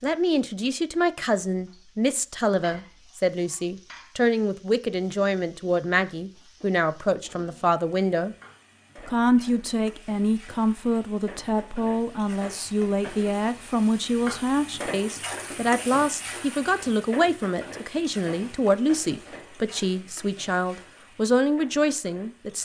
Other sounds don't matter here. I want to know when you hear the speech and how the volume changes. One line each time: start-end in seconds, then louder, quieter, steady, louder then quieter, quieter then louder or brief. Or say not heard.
0.0-8.3 steady
8.9-22.6 steady.